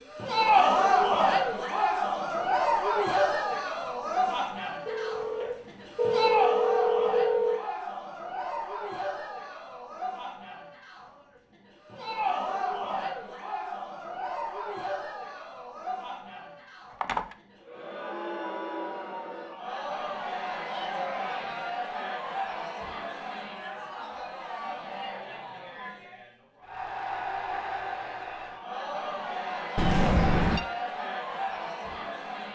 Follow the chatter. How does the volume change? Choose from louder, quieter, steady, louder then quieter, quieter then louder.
quieter.